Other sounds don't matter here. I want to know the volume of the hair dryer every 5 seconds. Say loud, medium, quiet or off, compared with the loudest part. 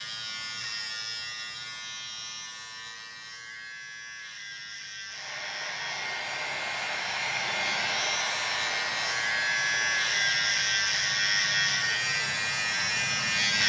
off, loud, medium.